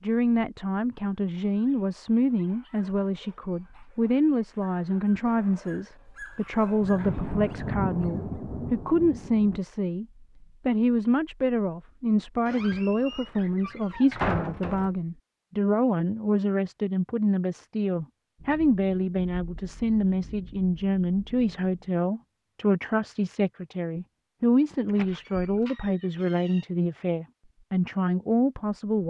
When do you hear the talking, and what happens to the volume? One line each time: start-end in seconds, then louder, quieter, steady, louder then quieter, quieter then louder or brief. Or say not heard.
0.0-29.0 steady.